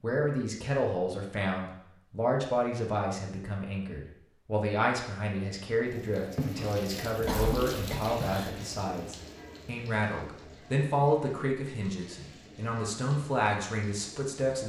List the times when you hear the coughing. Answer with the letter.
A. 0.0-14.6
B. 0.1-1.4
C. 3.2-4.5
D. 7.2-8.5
D.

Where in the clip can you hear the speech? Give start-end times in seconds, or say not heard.
0.0-14.6.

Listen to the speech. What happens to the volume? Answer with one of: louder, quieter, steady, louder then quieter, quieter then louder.
steady.